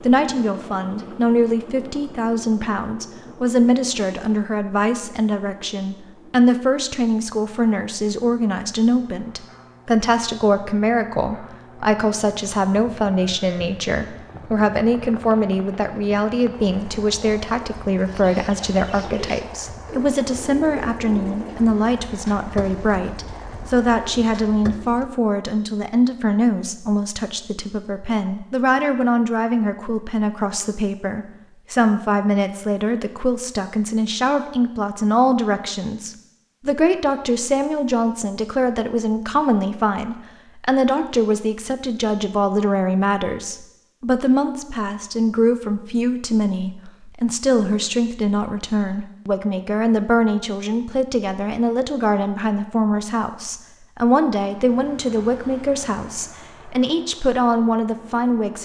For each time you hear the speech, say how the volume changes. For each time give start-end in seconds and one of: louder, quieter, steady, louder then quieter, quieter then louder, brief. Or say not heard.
0.0-58.5 steady.